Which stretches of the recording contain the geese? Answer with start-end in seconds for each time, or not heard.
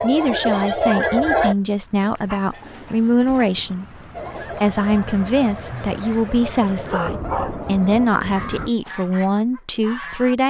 0.0-1.6, 4.1-10.3.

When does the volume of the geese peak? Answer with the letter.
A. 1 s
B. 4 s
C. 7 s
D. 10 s
A.